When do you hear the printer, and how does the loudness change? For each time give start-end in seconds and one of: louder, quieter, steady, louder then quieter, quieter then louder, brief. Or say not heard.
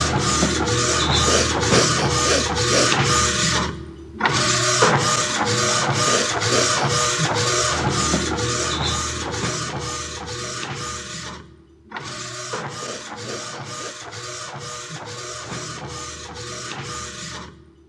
0.0-17.8 quieter.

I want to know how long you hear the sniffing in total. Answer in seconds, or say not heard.
4 s.